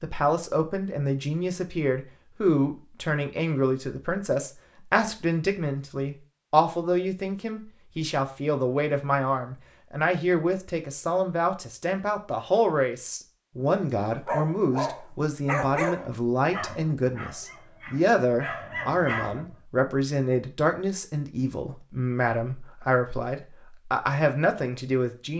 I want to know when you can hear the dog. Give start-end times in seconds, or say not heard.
14.1-19.6.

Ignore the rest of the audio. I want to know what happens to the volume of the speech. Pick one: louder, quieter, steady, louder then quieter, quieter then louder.
steady.